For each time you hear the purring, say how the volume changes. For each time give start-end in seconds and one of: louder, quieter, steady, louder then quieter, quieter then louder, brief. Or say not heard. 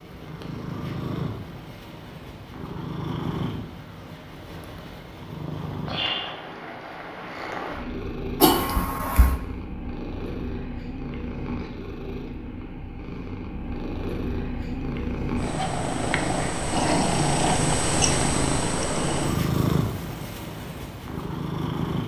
0.0-22.0 louder.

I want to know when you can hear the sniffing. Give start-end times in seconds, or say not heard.
8.4-9.3.